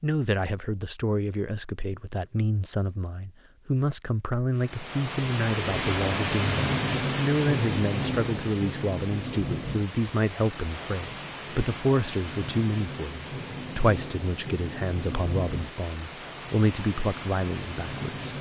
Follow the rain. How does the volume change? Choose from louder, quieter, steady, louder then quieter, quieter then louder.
quieter.